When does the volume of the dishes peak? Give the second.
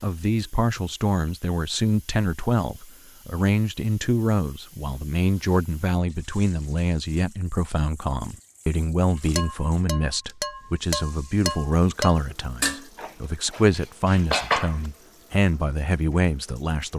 14 s.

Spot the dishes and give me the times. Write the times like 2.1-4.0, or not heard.
9.3-14.9.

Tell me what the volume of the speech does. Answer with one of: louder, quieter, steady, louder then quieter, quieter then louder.
steady.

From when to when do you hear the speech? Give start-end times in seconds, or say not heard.
0.0-16.9.